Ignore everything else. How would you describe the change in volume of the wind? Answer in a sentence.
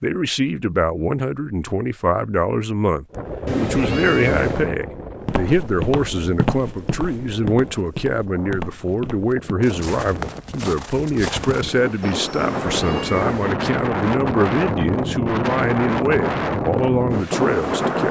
The loudness of the wind goes down, then up.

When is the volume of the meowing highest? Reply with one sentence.
The volume of the meowing peaks at 4 seconds.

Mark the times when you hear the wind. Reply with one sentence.
The wind can be heard from 3.1 to 18.0 s.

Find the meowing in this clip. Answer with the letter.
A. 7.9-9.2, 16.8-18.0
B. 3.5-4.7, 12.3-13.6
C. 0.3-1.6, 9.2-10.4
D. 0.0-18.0
B.